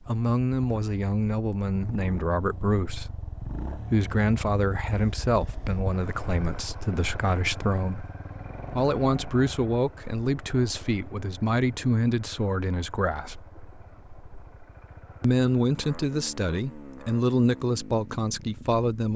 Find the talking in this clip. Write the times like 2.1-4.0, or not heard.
0.1-8.1, 8.7-13.4, 15.2-19.1.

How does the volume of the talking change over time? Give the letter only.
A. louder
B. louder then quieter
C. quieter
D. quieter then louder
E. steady
E.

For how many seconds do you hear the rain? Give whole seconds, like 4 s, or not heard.
not heard.